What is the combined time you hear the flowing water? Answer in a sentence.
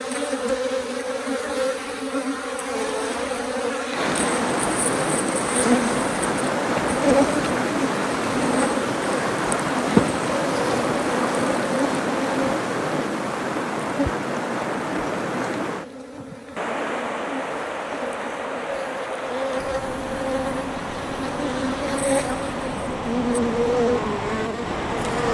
The flowing water can be heard for 21 seconds in total.